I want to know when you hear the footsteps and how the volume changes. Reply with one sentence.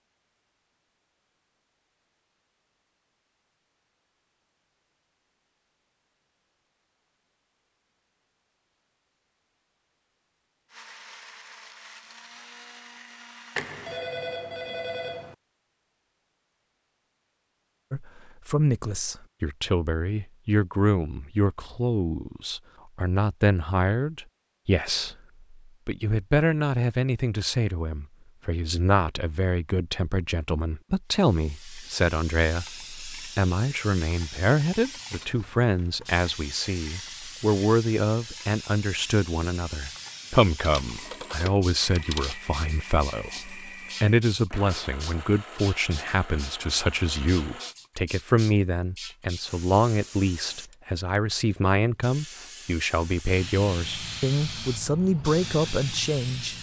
The footsteps can't be heard in this clip.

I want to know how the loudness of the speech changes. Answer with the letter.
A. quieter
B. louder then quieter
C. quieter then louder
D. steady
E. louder
D.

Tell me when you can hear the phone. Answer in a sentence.
You can hear the phone from 13.6 to 15.3 s and from 40.6 to 42.4 s.